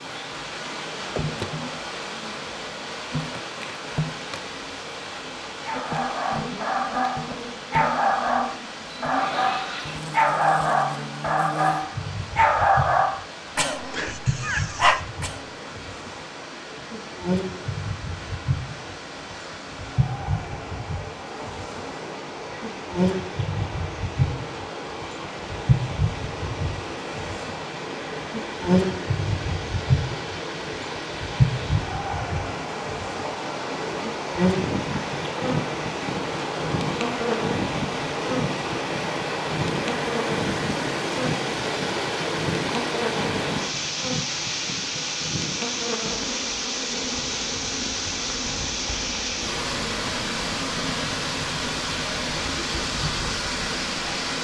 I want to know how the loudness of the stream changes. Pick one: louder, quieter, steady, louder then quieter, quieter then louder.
louder.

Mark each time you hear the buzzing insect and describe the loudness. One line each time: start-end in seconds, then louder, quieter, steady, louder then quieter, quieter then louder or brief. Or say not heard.
0.0-54.3 louder then quieter.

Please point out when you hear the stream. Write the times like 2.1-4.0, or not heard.
0.0-54.3.